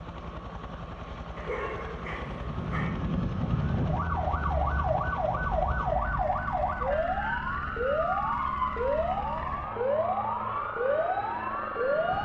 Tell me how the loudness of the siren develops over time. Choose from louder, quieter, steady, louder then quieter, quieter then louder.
steady.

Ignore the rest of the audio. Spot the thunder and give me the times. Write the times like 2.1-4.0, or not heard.
not heard.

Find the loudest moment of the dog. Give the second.
2 s.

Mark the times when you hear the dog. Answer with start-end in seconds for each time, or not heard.
1.4-2.9.